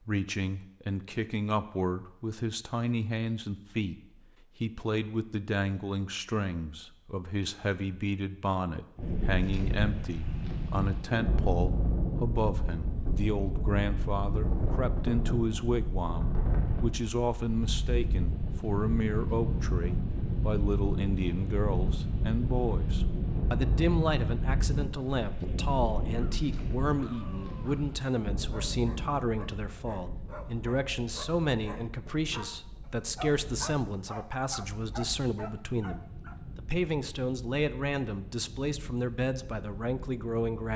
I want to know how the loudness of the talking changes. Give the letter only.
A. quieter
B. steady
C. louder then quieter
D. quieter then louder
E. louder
B.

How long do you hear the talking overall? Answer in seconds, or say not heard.
41 s.